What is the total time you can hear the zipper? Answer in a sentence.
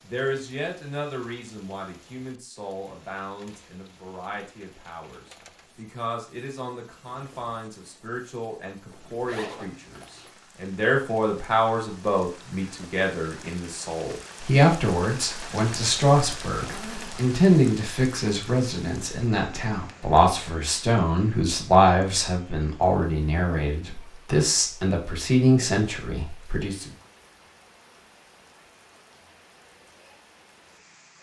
The zipper can be heard for 2 seconds in total.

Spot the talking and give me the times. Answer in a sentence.
The talking can be heard from 0.0 to 26.9 s.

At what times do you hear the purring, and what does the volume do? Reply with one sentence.
The purring can't be heard in this clip.